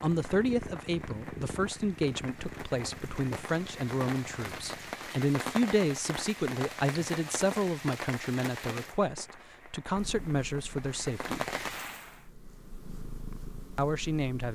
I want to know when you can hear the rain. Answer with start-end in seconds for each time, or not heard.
0.0-12.3.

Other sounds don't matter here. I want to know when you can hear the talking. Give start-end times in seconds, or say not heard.
0.0-11.4, 13.8-14.5.